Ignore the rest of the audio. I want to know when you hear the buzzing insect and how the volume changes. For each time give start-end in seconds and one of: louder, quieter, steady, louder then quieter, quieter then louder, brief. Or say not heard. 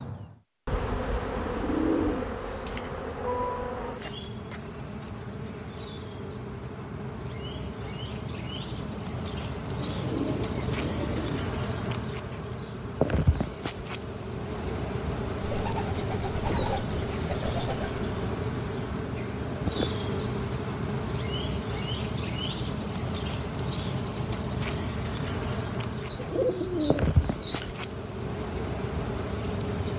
0.0-29.9 steady.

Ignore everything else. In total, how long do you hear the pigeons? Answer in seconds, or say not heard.
7 s.